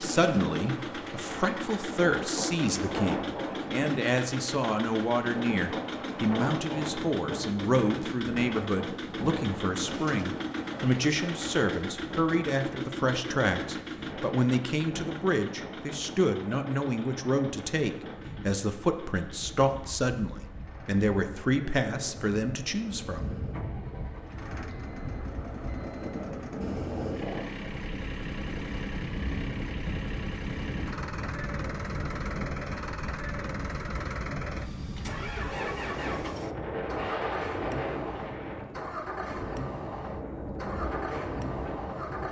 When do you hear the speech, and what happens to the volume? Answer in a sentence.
The speech can be heard from 0.0 to 23.3 s, at a steady volume.